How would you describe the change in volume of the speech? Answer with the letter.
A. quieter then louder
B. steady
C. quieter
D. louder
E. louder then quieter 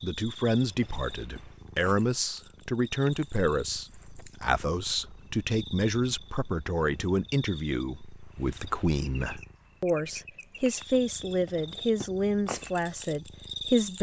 B.